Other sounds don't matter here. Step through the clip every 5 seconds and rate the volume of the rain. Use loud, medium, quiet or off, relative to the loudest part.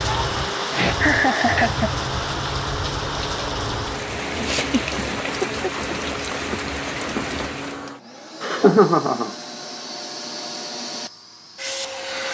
loud, loud, off.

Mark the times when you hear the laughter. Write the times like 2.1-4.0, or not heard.
0.6-2.0, 4.4-6.2, 8.4-9.3.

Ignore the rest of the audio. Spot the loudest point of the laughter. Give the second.
9 s.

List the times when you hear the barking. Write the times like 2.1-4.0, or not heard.
not heard.